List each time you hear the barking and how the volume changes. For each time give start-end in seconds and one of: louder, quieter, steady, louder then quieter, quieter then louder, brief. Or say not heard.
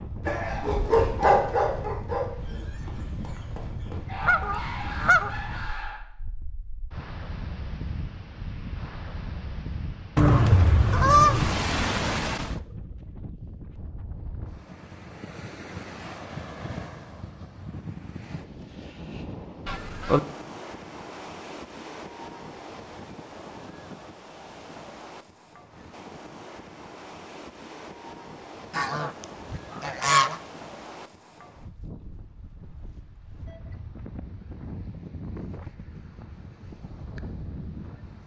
0.2-6.0 quieter then louder.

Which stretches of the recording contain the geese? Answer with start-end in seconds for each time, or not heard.
4.2-5.4, 10.2-12.6, 19.6-20.2, 28.7-30.4.